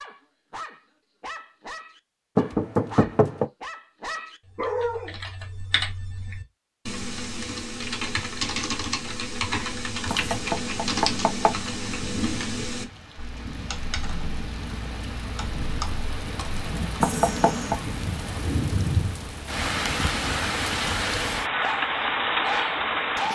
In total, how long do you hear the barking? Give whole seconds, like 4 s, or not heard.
7 s.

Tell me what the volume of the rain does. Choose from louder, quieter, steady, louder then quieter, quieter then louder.
louder.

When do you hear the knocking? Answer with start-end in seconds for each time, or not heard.
2.4-3.5, 10.1-11.6, 17.0-17.8.